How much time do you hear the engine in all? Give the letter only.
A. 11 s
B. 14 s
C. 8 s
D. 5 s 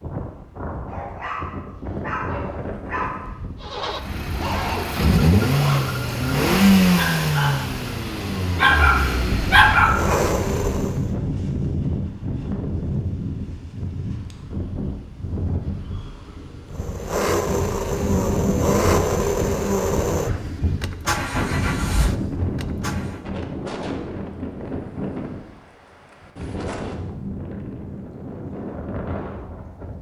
B.